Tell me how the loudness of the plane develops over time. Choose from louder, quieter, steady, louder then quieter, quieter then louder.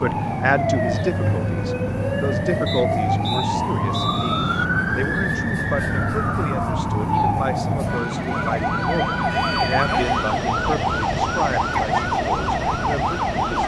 steady.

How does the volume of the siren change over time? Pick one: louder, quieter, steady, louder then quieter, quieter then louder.
steady.